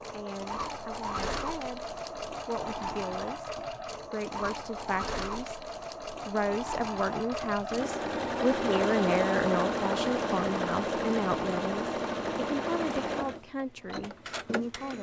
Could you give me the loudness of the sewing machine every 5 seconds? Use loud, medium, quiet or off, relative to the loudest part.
medium, loud, loud.